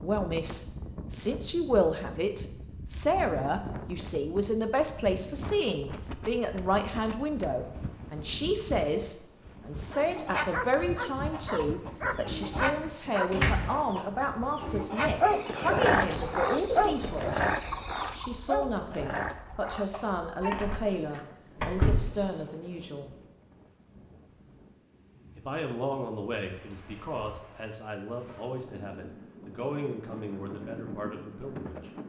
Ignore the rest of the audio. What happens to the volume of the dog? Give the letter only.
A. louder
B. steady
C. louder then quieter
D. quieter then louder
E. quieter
C.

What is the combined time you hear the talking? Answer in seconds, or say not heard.
29 s.